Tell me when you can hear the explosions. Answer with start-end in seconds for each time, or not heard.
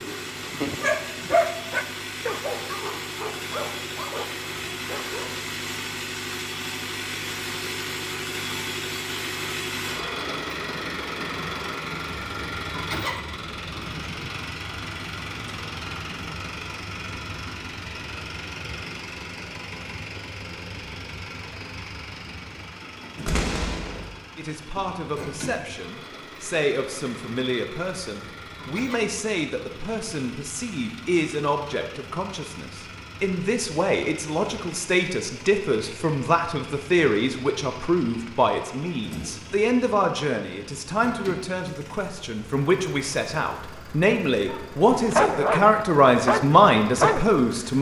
23.2-24.1.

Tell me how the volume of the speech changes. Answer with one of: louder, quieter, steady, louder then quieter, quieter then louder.
louder.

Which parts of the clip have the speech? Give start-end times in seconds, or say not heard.
24.4-47.7.